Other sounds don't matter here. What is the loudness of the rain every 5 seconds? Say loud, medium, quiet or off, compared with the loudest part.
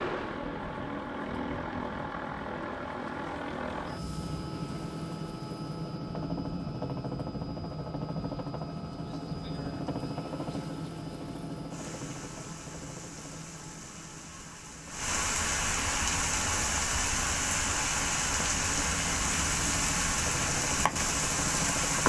quiet, quiet, quiet, loud, loud.